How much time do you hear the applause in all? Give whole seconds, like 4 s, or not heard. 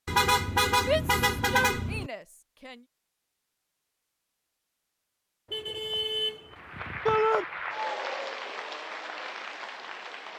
4 s.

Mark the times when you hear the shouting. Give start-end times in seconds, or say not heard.
0.8-2.8, 7.0-7.5.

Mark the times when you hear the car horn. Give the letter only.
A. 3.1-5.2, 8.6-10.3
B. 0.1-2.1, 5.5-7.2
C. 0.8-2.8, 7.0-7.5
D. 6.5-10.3
B.